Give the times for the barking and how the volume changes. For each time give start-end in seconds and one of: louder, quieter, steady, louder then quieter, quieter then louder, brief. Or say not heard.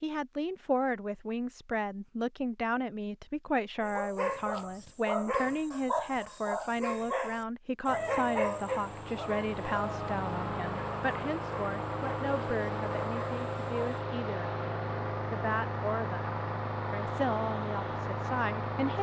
3.8-14.0 quieter.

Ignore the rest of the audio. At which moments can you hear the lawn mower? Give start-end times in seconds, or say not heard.
7.8-18.9.